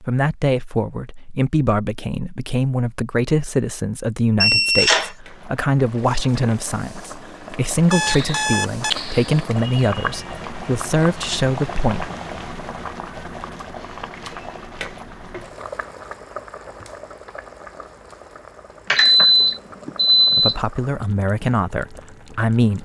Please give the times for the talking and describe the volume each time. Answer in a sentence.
You can hear the talking from 0.0 to 12.1 s, at a steady volume; and briefly from 20.4 to 22.7 s.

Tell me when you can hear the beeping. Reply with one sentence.
You can hear the beeping from 4.4 to 5.1 s, from 7.9 to 9.3 s and from 18.9 to 20.6 s.